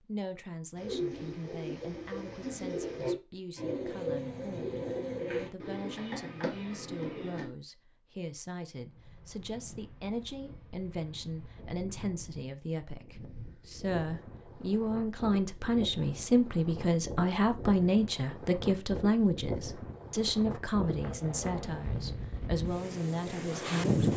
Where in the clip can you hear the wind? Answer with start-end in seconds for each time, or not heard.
8.8-24.1.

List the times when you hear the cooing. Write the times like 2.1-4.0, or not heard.
0.8-7.5.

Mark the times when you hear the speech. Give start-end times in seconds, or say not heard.
0.0-24.1.